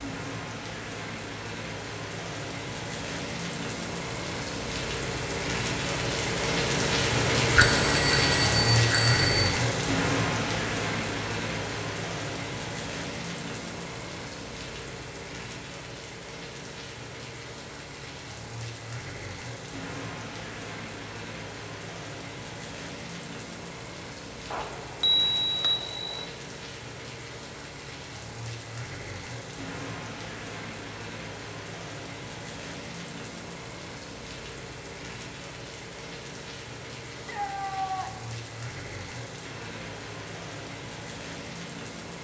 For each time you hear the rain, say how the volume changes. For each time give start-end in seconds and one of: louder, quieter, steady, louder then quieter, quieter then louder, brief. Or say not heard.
0.0-42.1 quieter.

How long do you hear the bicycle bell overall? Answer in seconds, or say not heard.
4 s.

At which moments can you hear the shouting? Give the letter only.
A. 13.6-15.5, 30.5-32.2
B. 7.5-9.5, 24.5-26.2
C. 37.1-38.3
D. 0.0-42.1
C.